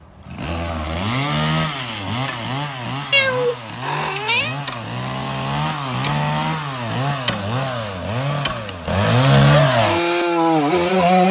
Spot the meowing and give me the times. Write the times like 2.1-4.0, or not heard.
3.1-4.6.